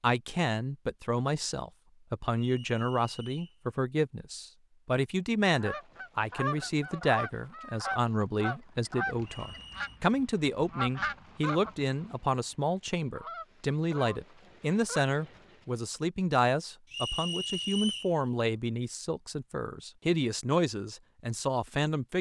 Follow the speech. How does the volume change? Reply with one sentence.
The volume of the speech stays about the same.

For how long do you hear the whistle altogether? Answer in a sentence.
The whistle can be heard for 3 seconds in total.